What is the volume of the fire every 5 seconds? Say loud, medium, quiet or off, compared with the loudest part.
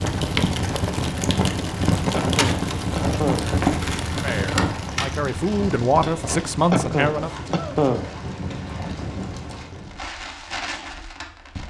loud, medium, medium.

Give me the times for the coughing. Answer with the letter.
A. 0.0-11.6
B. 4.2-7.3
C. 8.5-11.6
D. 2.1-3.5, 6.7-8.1
D.